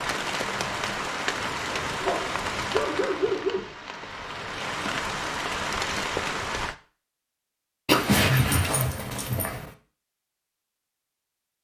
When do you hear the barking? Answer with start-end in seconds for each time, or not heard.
2.0-3.6, 7.8-9.7.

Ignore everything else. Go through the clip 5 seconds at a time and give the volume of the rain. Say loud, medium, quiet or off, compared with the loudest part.
loud, loud, off.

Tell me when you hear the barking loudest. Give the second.
8 s.